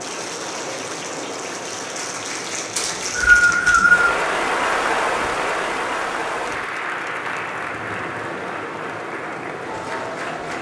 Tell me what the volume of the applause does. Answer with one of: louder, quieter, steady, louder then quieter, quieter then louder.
louder then quieter.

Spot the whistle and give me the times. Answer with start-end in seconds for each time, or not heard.
2.8-4.2.